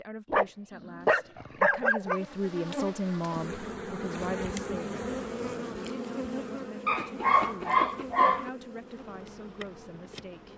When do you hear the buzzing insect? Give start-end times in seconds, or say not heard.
2.0-10.5.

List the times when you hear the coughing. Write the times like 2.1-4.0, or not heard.
not heard.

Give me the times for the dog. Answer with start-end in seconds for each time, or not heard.
0.3-2.2, 6.8-8.5.